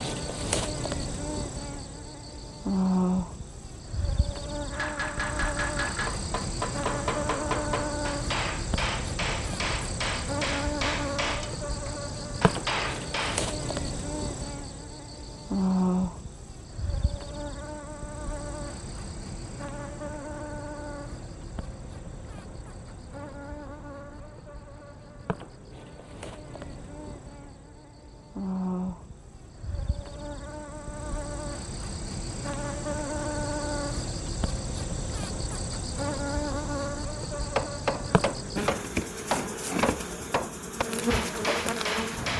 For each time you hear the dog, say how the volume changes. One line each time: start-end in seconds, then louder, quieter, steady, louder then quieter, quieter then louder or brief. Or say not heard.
not heard.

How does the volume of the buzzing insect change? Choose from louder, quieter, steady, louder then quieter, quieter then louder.
quieter then louder.